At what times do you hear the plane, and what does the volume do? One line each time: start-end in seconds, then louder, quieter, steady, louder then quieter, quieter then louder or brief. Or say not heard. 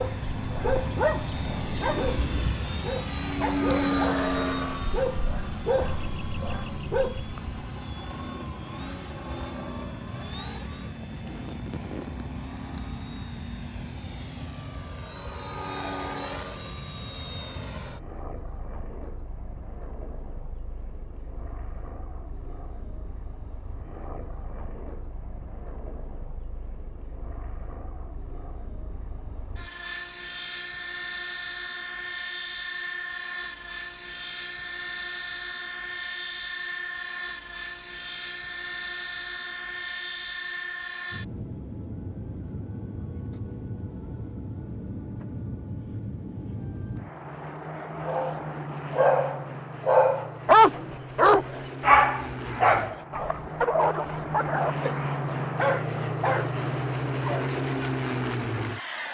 0.0-59.1 quieter then louder.